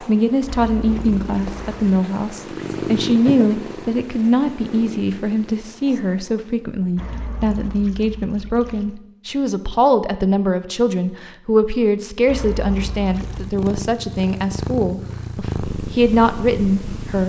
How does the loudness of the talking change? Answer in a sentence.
The volume of the talking stays about the same.